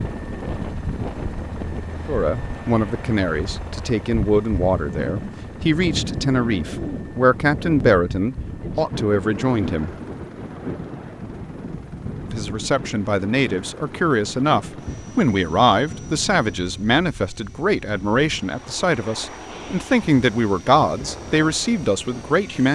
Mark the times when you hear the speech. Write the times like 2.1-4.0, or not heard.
2.0-9.9, 12.2-22.7.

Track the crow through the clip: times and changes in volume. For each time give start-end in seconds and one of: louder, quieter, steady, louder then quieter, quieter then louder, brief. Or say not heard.
not heard.